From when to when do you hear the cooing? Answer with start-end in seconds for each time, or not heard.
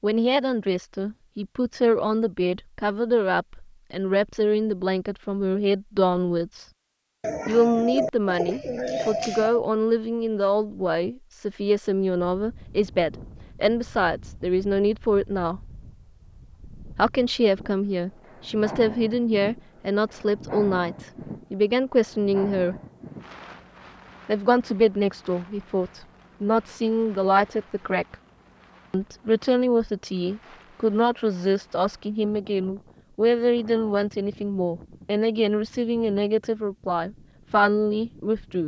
7.2-9.6.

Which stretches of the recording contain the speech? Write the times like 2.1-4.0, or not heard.
0.0-6.7, 7.5-15.6, 16.9-22.8, 24.2-28.1, 28.9-38.6.